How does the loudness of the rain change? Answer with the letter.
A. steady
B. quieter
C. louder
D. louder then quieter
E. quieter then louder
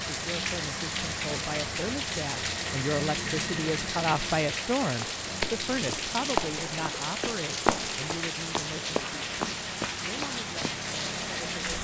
A.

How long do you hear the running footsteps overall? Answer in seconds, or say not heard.
6 s.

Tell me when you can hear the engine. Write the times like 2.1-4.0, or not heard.
0.0-11.7.